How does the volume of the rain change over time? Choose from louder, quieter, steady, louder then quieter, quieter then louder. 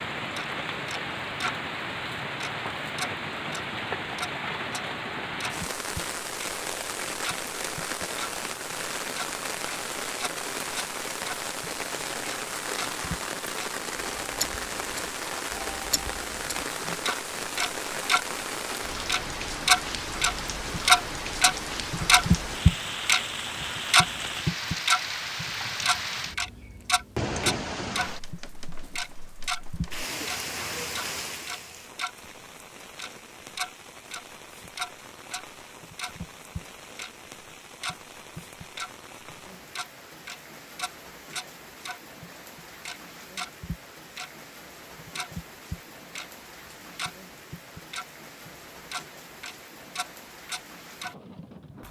quieter.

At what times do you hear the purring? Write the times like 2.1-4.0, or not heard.
not heard.